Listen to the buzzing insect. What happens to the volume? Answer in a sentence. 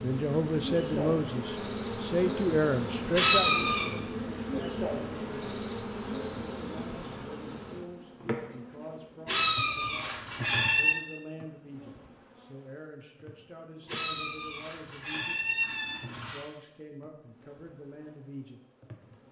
The loudness of the buzzing insect goes down.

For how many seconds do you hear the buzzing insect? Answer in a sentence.
The buzzing insect can be heard for 19 seconds in total.